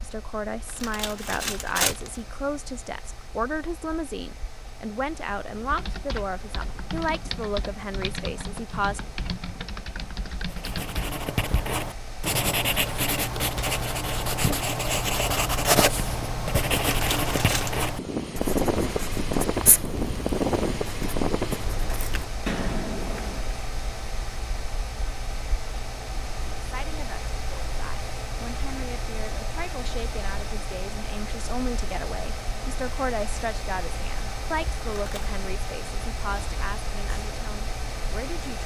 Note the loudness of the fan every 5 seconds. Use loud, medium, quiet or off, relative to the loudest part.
quiet, quiet, quiet, loud, loud, medium, medium, medium.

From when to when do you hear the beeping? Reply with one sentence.
You can't hear the beeping here.